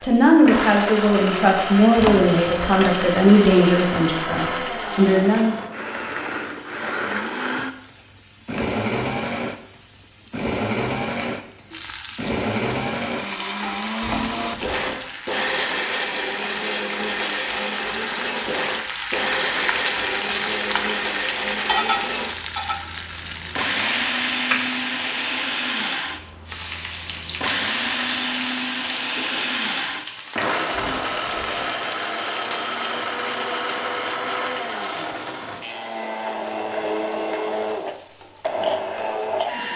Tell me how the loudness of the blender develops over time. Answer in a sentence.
The loudness of the blender stays about the same.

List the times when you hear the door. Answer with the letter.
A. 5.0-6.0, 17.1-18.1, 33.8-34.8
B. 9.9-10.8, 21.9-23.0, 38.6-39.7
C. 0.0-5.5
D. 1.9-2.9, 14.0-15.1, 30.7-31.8
D.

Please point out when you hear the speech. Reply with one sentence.
The speech can be heard from 0.0 to 5.5 s.